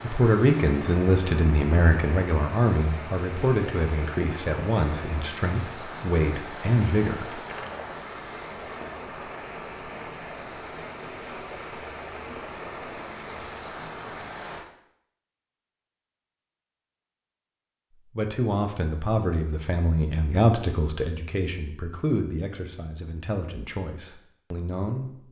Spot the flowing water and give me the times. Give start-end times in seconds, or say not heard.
0.0-14.7.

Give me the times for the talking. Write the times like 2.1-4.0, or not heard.
0.0-7.3, 17.9-25.2.